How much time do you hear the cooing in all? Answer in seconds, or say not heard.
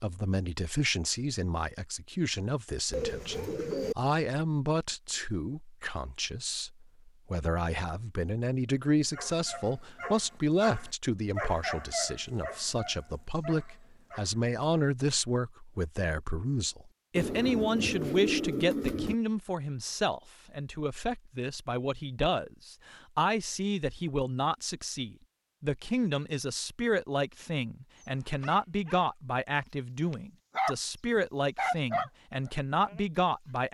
3 s.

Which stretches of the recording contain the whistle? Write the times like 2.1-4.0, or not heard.
not heard.